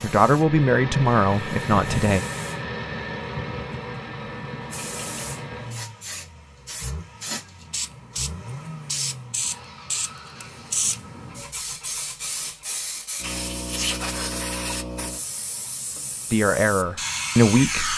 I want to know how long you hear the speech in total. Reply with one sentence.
You can hear the speech for 4 seconds altogether.